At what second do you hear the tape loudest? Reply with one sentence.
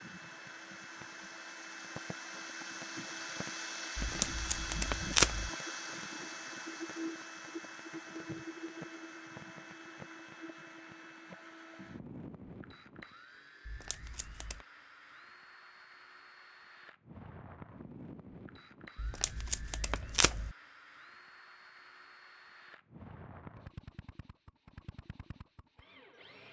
The volume of the tape peaks at 5 seconds.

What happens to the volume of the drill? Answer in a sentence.
The volume of the drill goes down.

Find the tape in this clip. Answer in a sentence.
You can hear the tape from 4.0 to 5.5 s, from 13.7 to 14.7 s and from 18.9 to 20.6 s.